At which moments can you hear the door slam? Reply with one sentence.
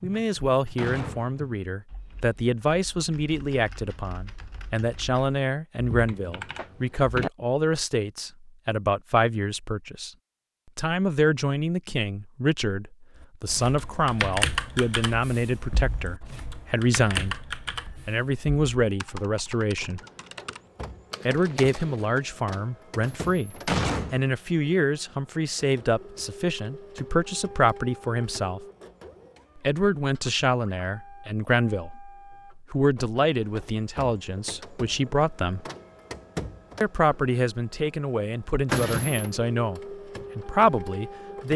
You can hear the door slam from 0.1 to 1.6 s, from 23.0 to 24.2 s and from 38.6 to 39.3 s.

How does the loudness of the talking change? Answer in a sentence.
The loudness of the talking stays about the same.